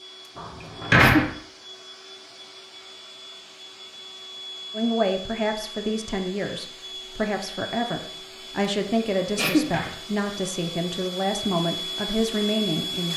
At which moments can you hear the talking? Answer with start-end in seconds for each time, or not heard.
4.7-13.1.